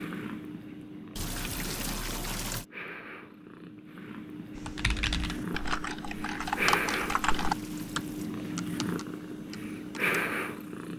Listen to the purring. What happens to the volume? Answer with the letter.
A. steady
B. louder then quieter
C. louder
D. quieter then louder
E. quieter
C.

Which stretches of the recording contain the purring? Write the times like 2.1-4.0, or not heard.
0.0-10.9.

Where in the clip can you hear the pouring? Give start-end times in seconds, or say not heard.
1.1-2.6, 6.4-8.3.